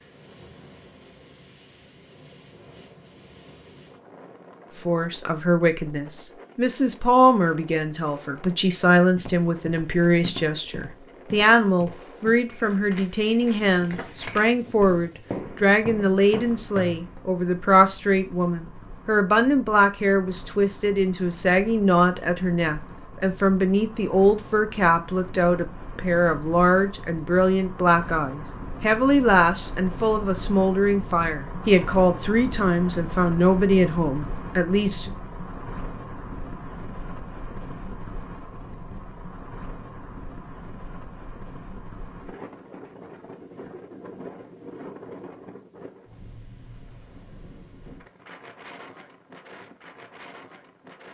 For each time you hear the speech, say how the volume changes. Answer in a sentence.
You can hear the speech from 4.8 to 35.1 s, at a steady volume.